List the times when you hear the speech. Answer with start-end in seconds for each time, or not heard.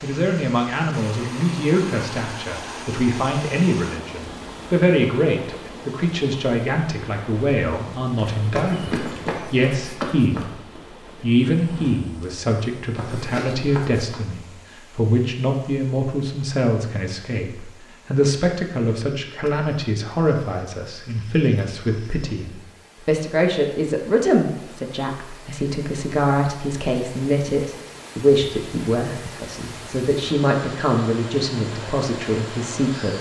0.0-10.5, 11.2-33.1.